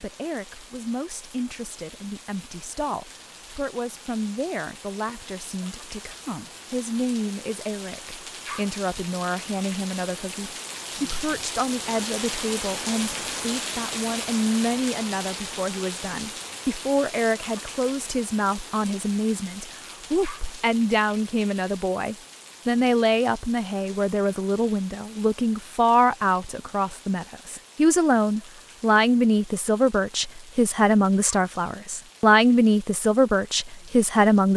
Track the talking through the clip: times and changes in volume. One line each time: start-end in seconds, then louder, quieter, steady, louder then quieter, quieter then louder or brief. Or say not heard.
0.0-34.5 louder.